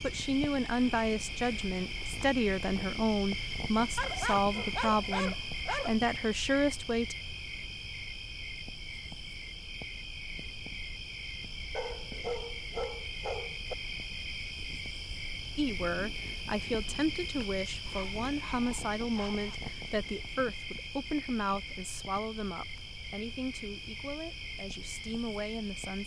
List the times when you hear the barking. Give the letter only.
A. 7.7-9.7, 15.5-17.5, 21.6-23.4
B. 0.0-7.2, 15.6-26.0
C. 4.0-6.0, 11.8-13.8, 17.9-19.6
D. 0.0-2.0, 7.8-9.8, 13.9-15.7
C.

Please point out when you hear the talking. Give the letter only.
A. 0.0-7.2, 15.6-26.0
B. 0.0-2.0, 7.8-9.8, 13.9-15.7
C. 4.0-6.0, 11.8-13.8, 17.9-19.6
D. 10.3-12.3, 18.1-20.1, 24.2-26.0
A.